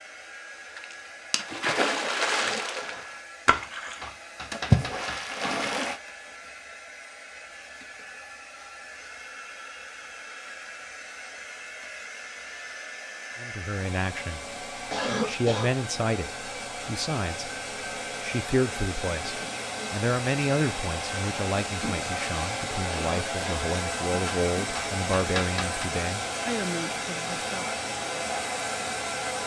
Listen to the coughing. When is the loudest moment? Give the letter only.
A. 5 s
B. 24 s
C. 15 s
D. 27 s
C.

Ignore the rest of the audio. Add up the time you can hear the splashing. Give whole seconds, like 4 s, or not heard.
5 s.